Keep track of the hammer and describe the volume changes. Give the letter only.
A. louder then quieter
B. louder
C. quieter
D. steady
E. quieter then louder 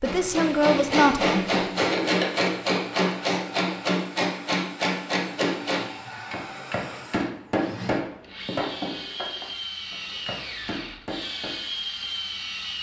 C.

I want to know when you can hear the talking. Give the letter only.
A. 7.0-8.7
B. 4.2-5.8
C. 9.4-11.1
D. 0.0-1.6
D.